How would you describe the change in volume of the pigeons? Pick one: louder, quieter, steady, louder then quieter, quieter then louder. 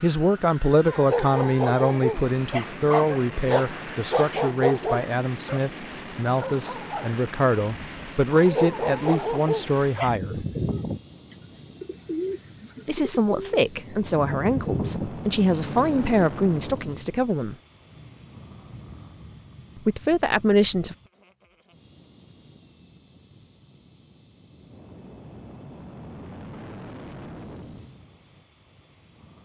quieter then louder.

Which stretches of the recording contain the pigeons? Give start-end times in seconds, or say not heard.
9.9-16.3.